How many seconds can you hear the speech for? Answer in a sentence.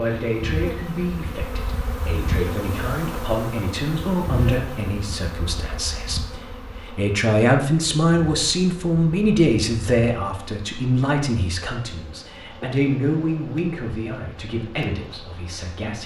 The speech can be heard for 16 seconds in total.